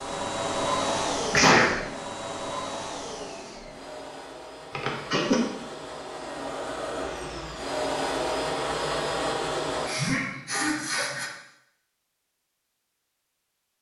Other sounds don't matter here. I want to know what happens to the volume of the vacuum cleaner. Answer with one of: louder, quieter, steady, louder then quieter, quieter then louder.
quieter then louder.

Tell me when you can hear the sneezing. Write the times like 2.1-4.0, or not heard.
1.3-1.8, 4.8-5.4, 9.8-11.3.